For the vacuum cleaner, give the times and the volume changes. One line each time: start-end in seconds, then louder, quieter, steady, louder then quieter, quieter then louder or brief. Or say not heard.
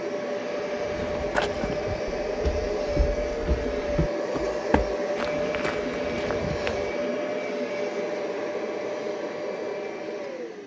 0.0-10.6 steady.